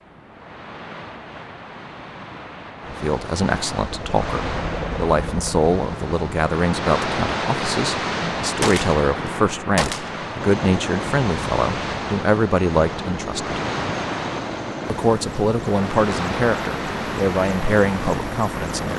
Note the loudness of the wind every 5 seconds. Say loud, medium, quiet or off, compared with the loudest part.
medium, loud, loud, loud.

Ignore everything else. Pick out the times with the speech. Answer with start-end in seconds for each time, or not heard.
2.9-13.6, 14.8-18.9.